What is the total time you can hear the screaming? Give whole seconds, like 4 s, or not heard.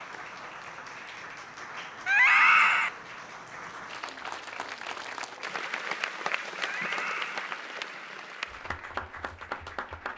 2 s.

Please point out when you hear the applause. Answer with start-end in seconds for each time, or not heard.
0.0-10.1.